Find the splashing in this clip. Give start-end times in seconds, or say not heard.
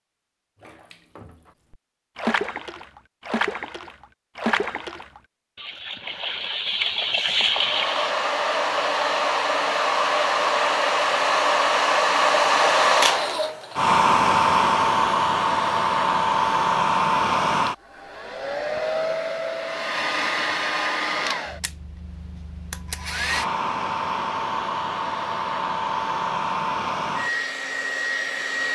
0.6-8.2.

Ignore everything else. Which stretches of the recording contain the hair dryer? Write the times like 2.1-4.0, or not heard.
7.5-28.7.